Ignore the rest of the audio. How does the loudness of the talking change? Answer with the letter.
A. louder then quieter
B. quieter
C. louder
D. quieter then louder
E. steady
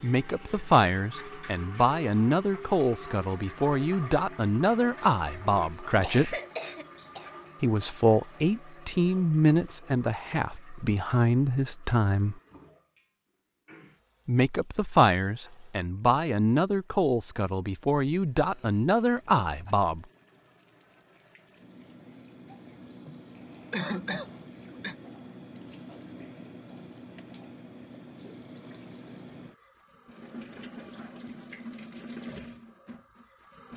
E.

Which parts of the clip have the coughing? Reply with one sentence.
The coughing can be heard from 6.0 to 7.3 s, from 18.4 to 19.8 s and from 23.7 to 24.9 s.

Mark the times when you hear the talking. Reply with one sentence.
The talking can be heard from 0.0 to 6.3 s, from 7.6 to 12.4 s and from 14.2 to 20.1 s.